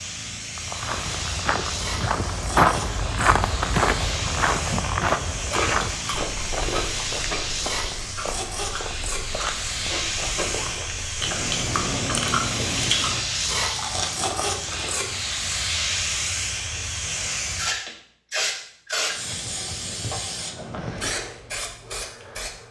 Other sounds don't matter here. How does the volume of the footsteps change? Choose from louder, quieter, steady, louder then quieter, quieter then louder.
quieter.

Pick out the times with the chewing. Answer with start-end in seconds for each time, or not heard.
5.5-15.0.